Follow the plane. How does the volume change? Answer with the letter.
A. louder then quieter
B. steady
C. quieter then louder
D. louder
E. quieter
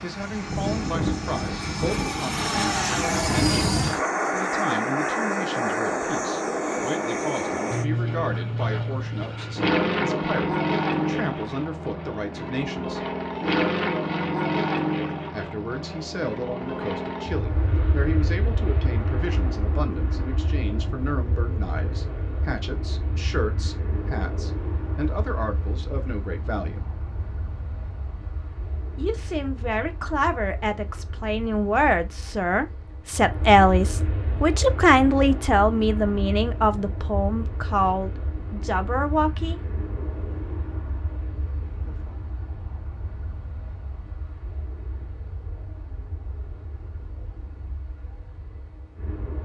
E.